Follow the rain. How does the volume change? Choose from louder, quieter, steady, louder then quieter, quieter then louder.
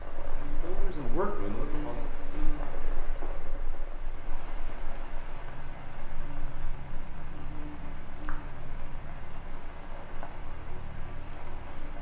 steady.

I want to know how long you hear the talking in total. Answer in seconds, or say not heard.
2 s.